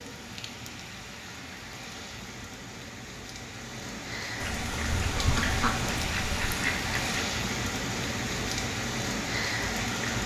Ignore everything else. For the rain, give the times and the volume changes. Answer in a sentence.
You can hear the rain from 0.0 to 10.2 s, getting louder.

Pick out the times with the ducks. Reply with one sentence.
The ducks can be heard from 4.4 to 7.2 s.